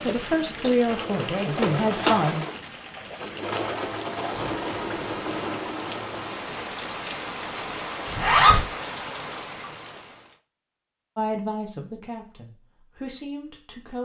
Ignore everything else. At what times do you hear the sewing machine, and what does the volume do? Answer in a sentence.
You can hear the sewing machine from 0.1 to 6.7 s, getting louder then quieter.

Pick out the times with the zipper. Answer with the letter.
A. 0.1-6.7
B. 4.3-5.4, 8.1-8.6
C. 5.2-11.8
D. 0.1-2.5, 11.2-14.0
B.